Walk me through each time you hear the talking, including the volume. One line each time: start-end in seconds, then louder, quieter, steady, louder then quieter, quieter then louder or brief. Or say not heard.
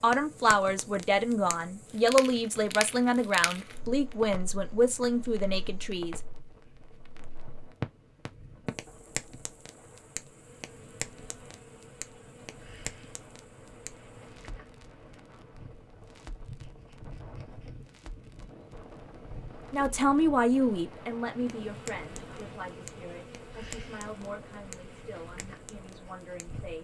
0.0-6.2 steady
19.7-26.7 quieter.